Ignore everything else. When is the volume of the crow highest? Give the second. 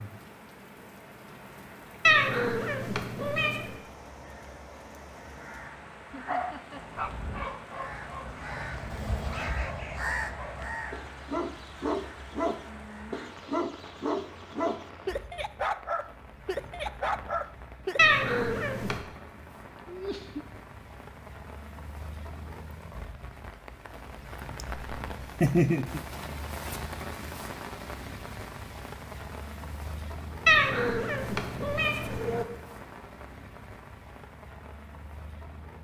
10 s.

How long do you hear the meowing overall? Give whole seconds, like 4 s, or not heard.
5 s.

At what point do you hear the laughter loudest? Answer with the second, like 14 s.
26 s.